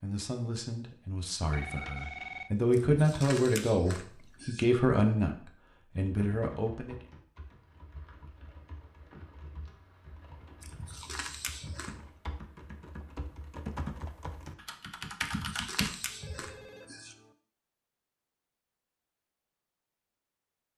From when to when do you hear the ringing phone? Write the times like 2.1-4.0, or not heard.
1.5-2.5, 16.1-17.4.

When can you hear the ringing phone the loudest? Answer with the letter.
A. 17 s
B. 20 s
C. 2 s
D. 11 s
C.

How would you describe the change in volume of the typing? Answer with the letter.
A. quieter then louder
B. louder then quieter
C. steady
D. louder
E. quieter
D.